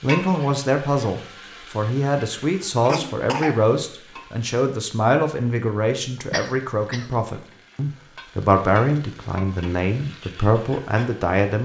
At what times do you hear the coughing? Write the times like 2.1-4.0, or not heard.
2.9-3.6, 6.3-7.2.